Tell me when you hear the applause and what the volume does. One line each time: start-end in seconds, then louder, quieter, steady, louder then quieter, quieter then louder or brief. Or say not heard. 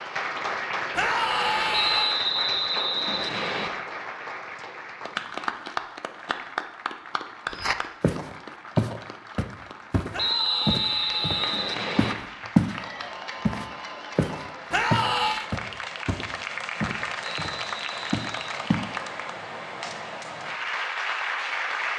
0.0-21.9 quieter then louder.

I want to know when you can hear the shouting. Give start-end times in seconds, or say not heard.
0.9-2.2, 10.1-11.8, 14.7-15.4.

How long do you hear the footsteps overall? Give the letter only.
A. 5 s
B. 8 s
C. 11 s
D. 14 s
C.